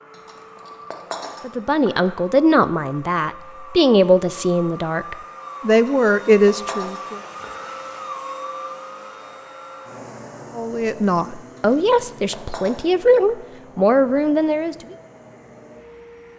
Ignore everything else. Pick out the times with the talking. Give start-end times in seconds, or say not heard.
1.4-7.2, 10.6-14.9.